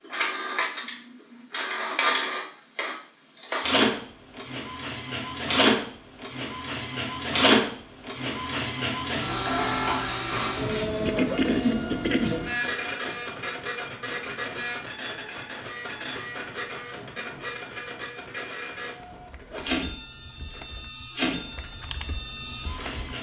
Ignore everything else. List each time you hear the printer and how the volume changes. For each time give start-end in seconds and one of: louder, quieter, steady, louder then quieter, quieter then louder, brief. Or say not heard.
0.0-23.1 quieter.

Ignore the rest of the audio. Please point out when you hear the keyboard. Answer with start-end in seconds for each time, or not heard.
18.9-23.1.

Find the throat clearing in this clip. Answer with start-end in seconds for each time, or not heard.
11.1-12.3.